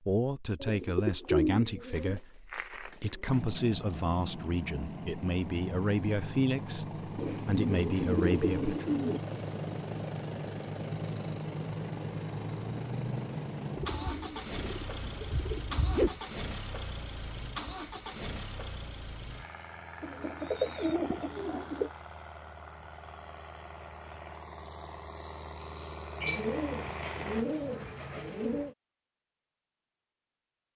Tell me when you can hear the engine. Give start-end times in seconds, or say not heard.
3.2-27.4.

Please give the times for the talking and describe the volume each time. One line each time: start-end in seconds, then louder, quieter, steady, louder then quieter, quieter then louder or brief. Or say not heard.
0.1-8.9 steady.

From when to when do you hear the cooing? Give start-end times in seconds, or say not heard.
0.6-3.4, 7.2-9.2, 13.8-16.2, 20.0-21.9, 26.2-28.8.